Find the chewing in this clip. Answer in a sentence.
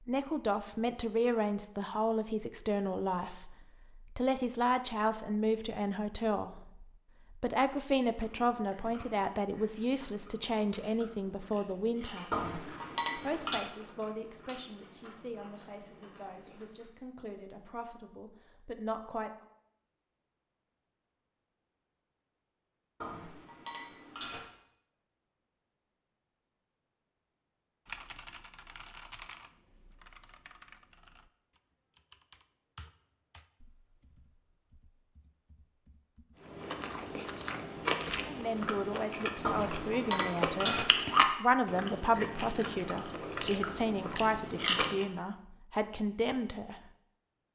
The chewing can be heard from 8.2 to 16.9 s and from 36.4 to 45.1 s.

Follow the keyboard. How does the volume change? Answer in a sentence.
The loudness of the keyboard goes down.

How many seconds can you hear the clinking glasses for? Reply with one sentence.
You can hear the clinking glasses for 4 seconds altogether.